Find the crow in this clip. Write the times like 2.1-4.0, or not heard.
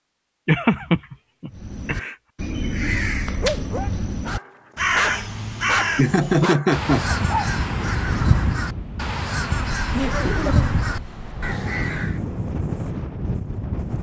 1.5-12.2.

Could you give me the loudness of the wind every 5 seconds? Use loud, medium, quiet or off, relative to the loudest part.
off, loud, loud.